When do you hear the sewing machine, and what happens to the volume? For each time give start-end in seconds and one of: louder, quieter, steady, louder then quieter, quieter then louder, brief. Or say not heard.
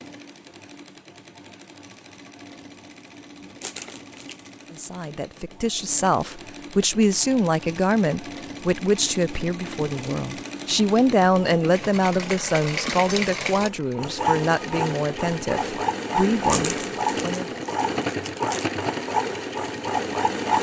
0.0-20.5 louder.